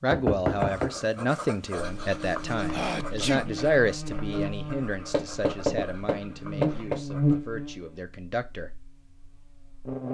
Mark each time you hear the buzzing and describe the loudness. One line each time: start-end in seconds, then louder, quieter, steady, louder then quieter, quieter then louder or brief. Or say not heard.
1.9-10.0 louder then quieter.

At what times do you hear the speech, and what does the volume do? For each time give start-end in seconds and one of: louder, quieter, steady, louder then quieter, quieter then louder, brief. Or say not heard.
0.0-8.7 quieter.